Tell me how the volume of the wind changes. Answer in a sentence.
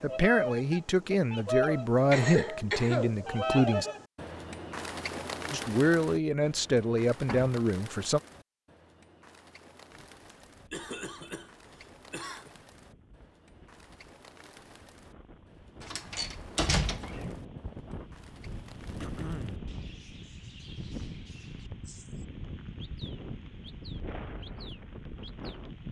The volume of the wind goes up.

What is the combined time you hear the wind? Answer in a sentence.
The wind can be heard for 16 seconds in total.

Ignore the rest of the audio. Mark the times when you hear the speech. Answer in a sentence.
The speech can be heard from 0.0 to 3.9 s and from 5.5 to 8.2 s.